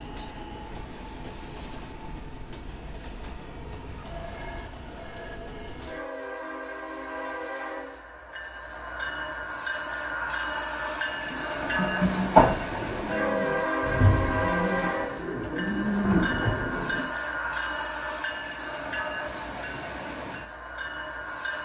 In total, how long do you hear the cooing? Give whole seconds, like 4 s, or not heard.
6 s.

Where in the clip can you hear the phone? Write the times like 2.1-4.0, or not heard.
not heard.